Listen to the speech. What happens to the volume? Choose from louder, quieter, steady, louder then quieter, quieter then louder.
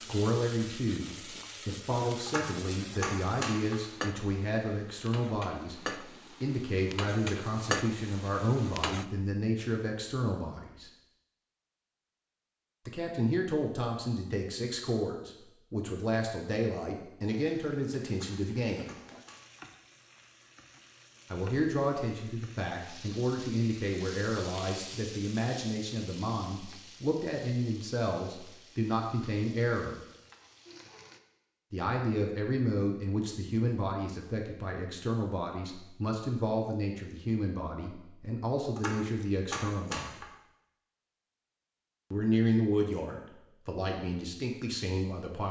steady.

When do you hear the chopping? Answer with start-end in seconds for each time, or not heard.
2.2-3.8, 18.1-19.6, 38.8-40.3.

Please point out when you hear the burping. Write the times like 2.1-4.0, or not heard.
not heard.